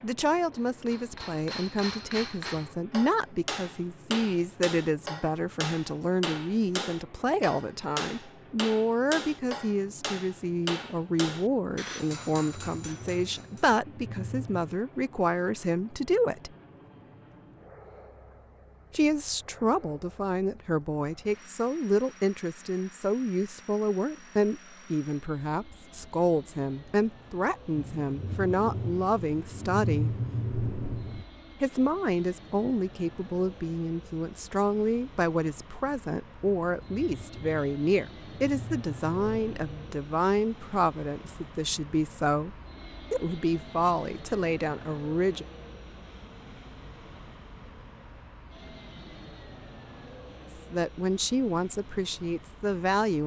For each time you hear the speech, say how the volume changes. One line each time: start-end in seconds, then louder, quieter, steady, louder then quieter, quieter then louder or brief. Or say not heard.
0.0-16.5 steady
18.9-30.1 steady
31.6-45.5 steady
50.7-53.2 brief.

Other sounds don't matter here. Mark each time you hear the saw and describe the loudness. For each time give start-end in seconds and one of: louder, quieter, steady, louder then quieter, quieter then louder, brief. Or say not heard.
not heard.